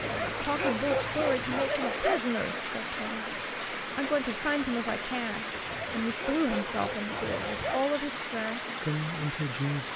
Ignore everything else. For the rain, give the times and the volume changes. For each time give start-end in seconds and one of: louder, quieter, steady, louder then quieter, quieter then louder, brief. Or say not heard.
0.0-9.9 steady.